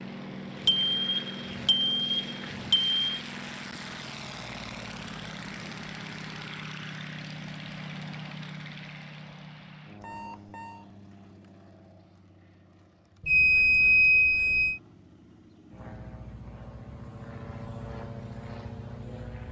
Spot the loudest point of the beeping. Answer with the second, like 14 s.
14 s.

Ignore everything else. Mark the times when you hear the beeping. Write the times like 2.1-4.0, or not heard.
0.7-3.0, 10.0-10.8, 13.2-14.8.